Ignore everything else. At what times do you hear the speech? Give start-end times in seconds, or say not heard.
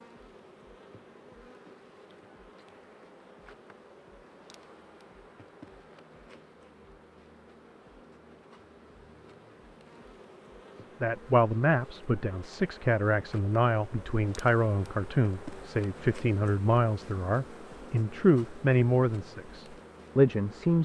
11.0-20.7.